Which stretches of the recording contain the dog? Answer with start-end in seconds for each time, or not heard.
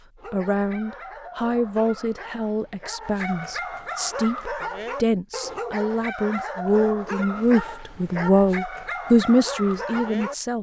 0.1-10.3.